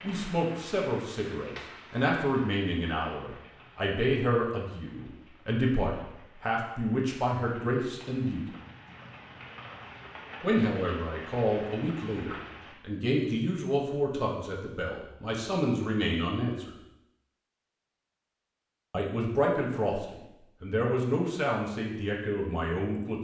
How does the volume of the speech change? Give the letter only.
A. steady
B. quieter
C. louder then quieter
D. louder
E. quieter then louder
A.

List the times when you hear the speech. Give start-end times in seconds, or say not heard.
0.0-8.4, 10.4-16.8, 18.9-23.1.